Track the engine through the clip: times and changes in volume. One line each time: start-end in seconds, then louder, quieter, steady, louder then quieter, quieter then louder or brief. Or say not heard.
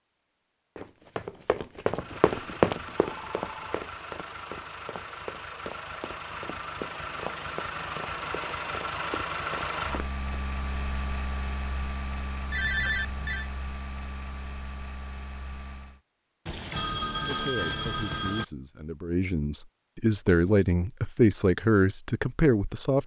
1.9-16.0 louder then quieter.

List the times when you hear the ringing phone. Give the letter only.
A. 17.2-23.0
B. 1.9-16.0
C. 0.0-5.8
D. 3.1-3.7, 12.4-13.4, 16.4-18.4
D.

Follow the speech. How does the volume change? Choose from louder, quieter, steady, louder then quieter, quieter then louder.
louder.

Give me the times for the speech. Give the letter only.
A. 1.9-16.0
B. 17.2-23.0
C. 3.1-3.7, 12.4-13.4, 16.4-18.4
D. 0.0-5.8
B.